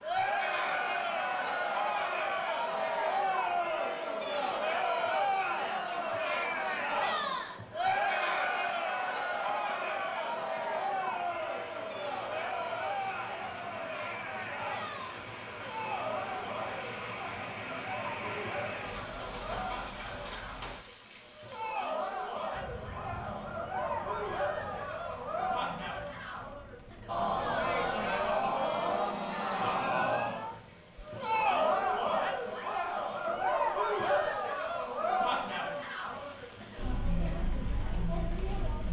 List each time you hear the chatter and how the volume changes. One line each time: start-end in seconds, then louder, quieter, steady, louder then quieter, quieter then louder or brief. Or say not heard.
0.0-38.8 quieter then louder.